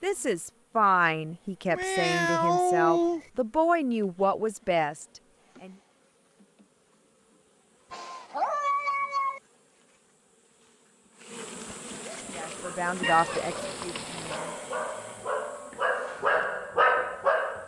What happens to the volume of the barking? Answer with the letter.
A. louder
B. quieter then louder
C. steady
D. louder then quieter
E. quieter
A.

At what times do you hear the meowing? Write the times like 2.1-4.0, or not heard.
1.6-3.2, 7.9-9.4, 13.0-14.4.